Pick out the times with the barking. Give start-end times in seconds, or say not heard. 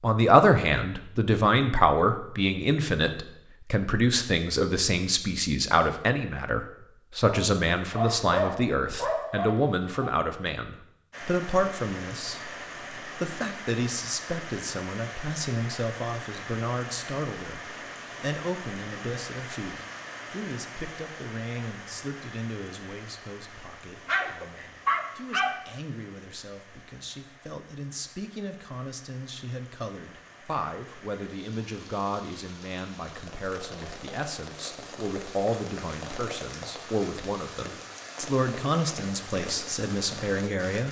7.2-10.1, 24.1-25.6.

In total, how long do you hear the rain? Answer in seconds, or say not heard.
30 s.